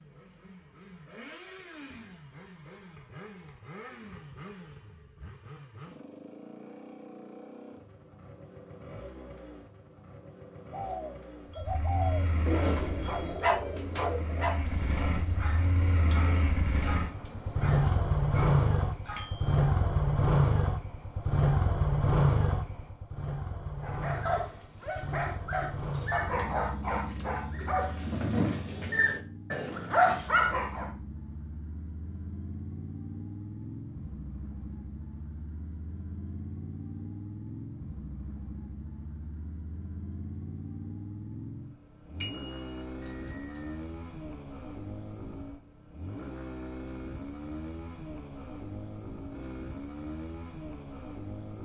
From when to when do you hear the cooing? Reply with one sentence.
You can hear the cooing from 10.7 to 19.0 s.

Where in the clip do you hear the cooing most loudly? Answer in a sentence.
The volume of the cooing peaks at 13 seconds.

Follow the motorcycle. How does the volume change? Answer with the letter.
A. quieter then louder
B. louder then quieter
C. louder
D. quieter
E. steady
B.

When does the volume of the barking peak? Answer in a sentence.
The volume of the barking peaks at 30 seconds.